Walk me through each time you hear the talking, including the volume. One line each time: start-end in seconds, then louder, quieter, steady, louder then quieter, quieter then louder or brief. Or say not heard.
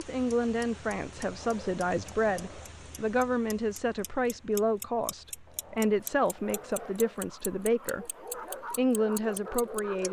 0.0-10.0 steady.